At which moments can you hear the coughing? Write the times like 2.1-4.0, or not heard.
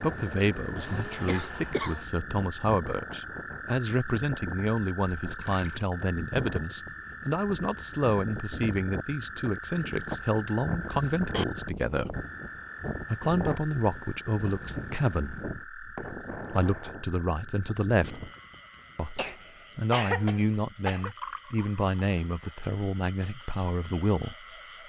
0.8-2.0, 10.8-11.4, 19.1-21.1.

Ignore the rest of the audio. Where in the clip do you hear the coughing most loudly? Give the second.
20 s.